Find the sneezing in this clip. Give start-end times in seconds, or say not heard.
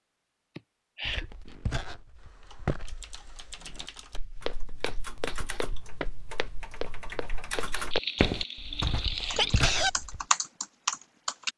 0.6-1.2, 7.9-9.9.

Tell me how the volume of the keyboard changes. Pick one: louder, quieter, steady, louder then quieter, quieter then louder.
louder.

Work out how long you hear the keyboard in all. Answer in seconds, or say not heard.
9 s.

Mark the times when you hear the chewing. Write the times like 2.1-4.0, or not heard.
not heard.